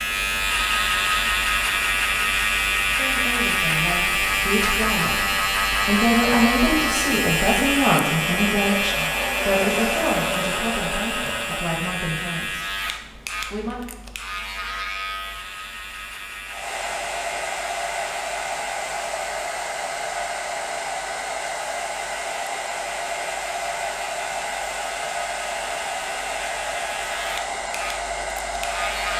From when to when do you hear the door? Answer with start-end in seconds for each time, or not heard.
not heard.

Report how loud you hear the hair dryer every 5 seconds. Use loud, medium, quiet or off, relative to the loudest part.
off, loud, loud, loud, loud, loud.